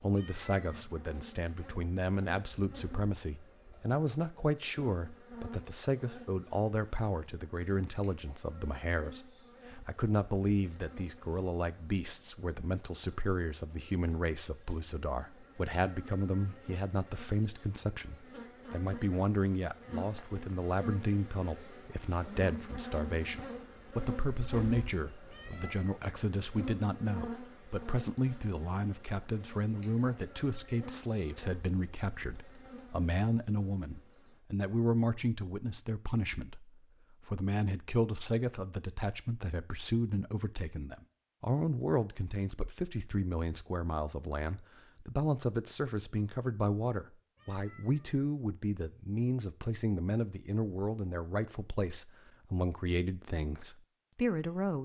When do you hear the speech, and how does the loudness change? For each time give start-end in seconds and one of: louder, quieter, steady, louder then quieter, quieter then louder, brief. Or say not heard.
0.0-54.7 steady.